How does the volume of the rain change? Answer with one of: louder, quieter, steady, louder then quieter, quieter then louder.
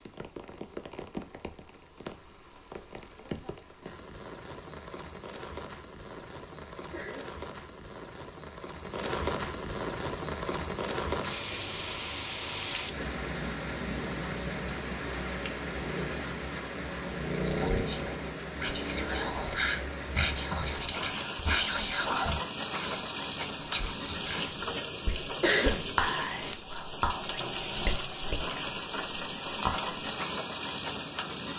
louder.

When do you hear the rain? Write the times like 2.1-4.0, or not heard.
0.0-31.5.